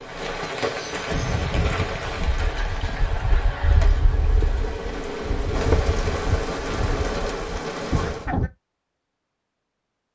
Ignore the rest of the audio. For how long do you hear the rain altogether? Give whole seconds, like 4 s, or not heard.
8 s.